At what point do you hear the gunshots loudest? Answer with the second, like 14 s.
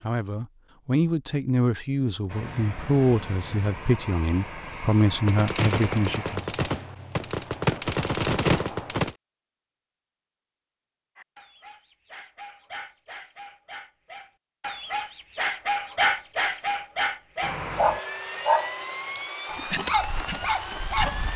8 s.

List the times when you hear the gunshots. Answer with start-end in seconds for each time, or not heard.
5.2-9.2.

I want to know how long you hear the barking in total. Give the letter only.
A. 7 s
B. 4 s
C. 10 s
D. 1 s
C.